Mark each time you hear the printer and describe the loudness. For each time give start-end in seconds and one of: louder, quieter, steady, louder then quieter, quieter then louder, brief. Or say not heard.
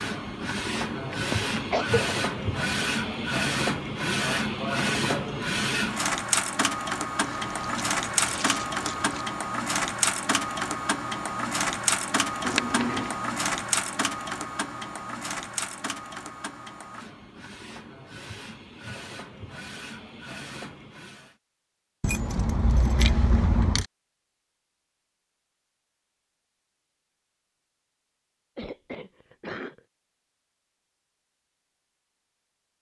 0.0-21.4 quieter.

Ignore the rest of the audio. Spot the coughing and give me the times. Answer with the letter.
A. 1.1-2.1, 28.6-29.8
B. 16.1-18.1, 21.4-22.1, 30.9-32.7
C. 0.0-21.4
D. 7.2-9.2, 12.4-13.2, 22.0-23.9
A.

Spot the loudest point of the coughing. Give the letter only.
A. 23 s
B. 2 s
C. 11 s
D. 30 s
B.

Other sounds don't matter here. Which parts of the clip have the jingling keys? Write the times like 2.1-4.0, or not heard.
7.2-9.2, 12.4-13.2, 22.0-23.9.